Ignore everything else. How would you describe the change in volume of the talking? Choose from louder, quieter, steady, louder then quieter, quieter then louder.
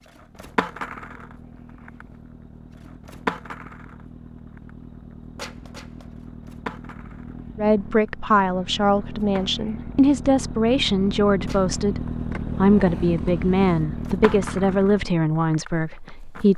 steady.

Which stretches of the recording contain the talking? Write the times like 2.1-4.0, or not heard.
7.5-16.5.